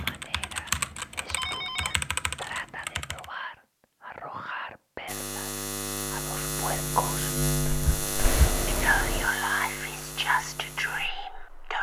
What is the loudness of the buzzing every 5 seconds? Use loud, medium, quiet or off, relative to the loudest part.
off, loud, quiet.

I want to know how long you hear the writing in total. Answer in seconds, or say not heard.
not heard.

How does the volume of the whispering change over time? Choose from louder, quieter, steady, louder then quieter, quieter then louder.
louder.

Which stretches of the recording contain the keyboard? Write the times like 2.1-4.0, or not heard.
0.0-3.3.